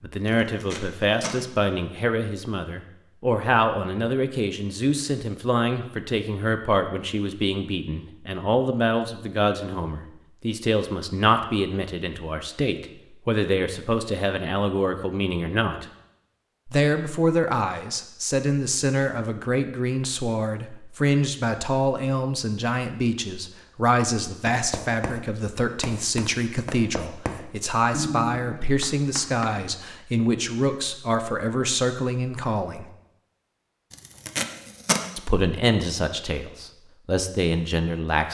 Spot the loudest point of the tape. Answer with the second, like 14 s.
35 s.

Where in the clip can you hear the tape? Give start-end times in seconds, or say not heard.
0.2-1.4, 33.9-35.0.